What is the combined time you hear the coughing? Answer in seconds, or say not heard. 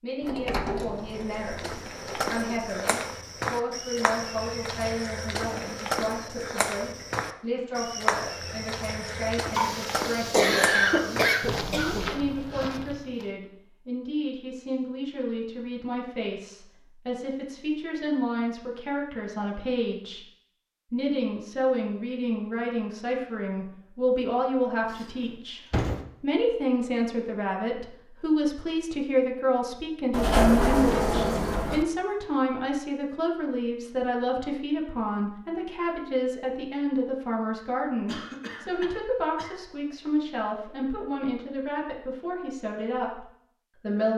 4 s.